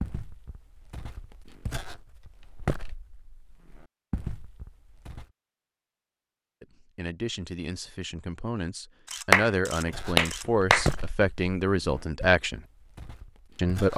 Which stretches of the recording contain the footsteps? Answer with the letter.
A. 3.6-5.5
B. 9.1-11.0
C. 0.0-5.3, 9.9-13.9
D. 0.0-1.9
C.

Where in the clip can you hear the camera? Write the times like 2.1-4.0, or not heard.
9.1-11.0.